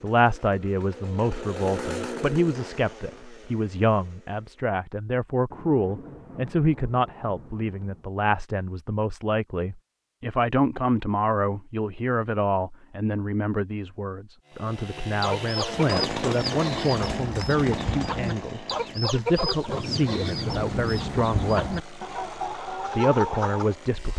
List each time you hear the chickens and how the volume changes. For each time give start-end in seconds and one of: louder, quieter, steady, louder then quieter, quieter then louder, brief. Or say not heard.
15.2-23.8 steady.